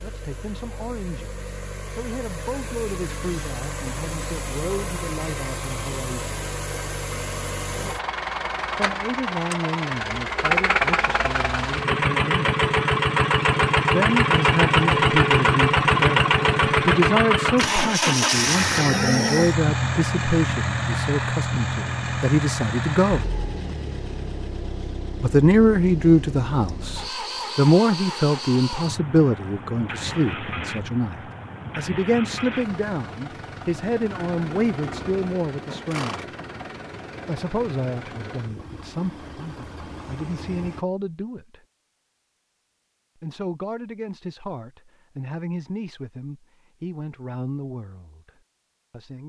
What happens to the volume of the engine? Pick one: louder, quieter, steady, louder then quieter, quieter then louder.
louder then quieter.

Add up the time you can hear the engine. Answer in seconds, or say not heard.
41 s.